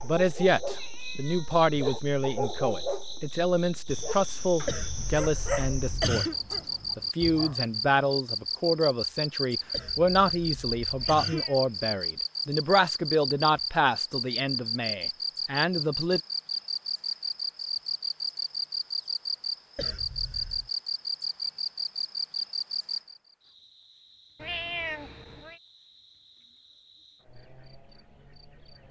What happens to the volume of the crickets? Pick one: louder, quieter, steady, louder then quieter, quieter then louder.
louder then quieter.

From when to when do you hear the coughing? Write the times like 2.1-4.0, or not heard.
4.7-6.3, 9.7-11.4, 19.8-20.7.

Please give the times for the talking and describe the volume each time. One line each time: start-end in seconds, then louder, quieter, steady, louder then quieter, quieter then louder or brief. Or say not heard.
0.0-16.2 steady.